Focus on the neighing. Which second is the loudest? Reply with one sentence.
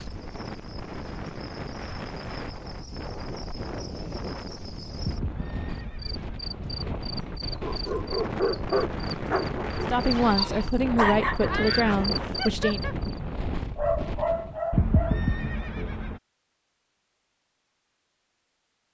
The loudest moment of the neighing is at 15 seconds.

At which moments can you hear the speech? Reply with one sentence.
You can hear the speech from 9.9 to 12.8 s.